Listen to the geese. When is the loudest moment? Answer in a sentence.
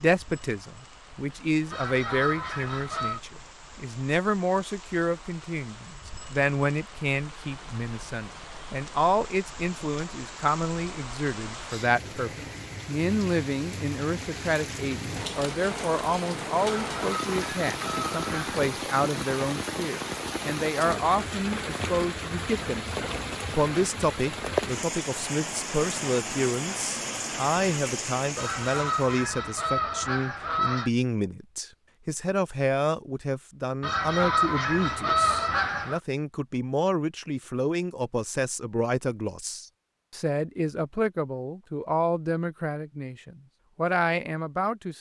The loudest moment of the geese is at 35 seconds.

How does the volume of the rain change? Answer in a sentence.
The volume of the rain goes up.